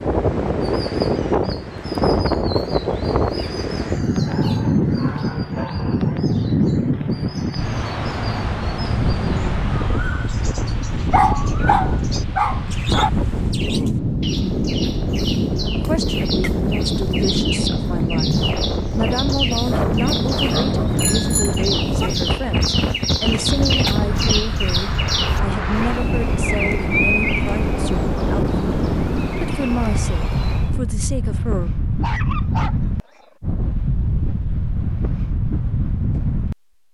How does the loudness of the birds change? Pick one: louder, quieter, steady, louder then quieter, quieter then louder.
louder.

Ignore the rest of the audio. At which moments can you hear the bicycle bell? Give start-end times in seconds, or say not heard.
20.9-22.1.